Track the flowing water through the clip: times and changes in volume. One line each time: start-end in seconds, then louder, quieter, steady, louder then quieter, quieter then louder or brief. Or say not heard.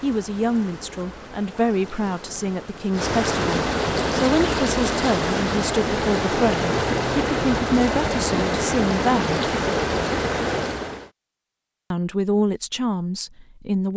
0.0-11.1 louder.